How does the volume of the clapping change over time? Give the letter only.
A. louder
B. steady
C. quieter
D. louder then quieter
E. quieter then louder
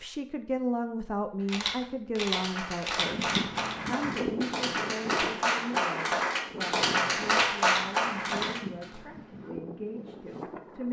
A.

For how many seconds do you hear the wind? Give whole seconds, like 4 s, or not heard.
8 s.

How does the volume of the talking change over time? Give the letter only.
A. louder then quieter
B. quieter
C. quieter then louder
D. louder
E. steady
B.